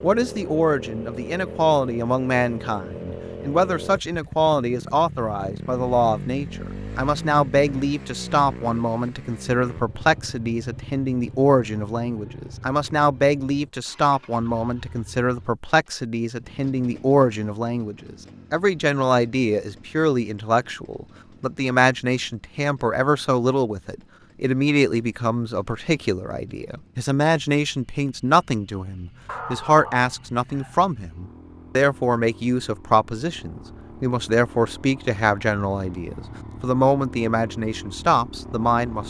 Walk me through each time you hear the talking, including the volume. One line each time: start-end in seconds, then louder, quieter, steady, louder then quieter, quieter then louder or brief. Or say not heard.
0.0-39.0 steady.